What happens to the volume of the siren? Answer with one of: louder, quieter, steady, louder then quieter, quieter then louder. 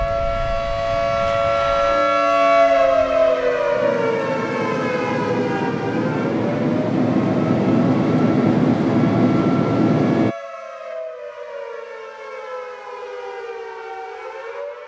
quieter.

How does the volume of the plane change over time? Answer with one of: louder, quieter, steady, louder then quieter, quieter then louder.
louder.